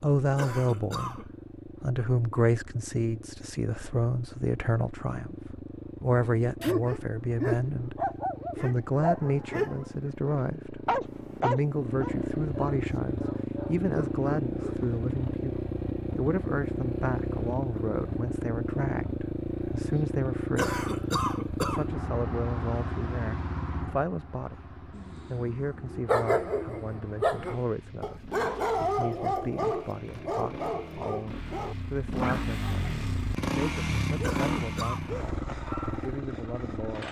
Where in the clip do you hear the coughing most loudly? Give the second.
21 s.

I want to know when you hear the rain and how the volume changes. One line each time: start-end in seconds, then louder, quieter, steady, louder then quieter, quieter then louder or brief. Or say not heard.
not heard.